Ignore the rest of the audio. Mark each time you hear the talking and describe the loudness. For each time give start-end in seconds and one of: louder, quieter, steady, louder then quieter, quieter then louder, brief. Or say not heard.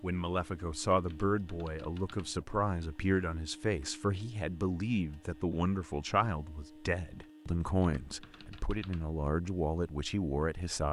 0.0-10.8 steady.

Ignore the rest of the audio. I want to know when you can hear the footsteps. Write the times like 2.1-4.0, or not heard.
not heard.